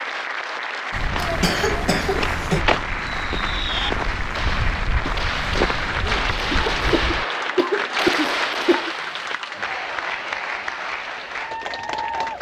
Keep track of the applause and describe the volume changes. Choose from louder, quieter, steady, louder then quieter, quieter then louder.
steady.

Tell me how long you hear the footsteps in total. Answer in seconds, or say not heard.
6 s.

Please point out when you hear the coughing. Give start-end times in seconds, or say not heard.
1.1-2.6, 6.5-8.9.